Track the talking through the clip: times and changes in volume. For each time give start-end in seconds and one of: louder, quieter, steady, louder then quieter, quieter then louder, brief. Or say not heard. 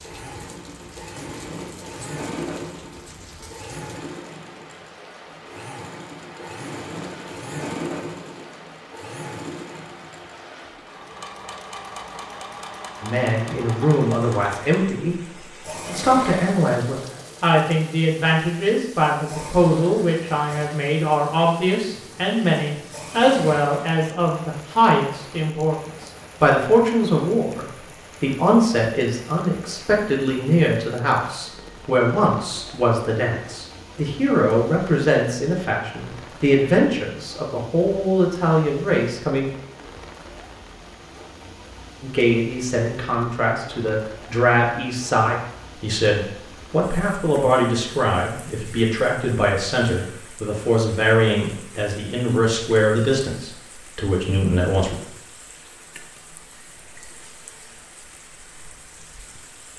13.0-39.5 steady
42.0-55.0 steady.